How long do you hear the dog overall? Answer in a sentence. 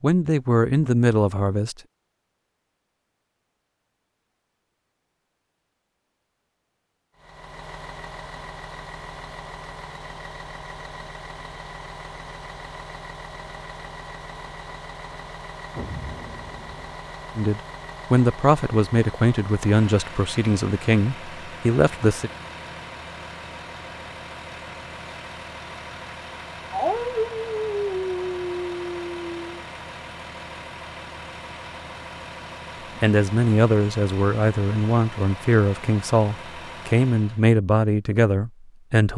The dog can be heard for 3 seconds in total.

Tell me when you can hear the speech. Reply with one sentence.
You can hear the speech from 0.0 to 1.8 s, from 17.4 to 22.3 s and from 33.0 to 39.1 s.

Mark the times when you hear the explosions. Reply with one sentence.
The explosions can be heard from 15.7 to 16.9 s.